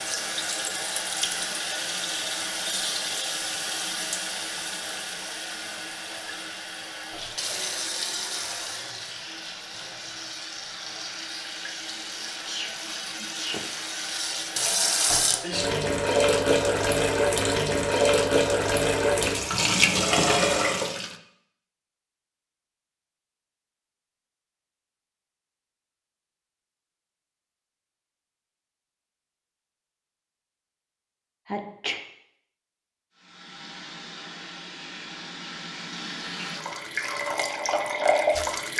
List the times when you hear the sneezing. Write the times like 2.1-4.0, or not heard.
12.2-13.7, 31.4-32.0.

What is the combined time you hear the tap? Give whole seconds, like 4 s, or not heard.
27 s.